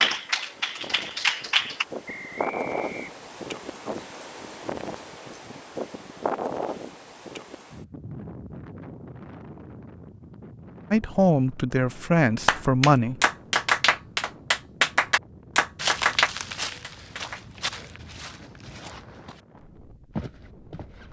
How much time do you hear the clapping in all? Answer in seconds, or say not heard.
7 s.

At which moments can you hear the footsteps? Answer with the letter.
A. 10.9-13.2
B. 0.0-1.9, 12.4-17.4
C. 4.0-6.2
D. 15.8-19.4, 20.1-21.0
D.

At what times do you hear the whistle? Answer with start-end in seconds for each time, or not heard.
2.0-3.1.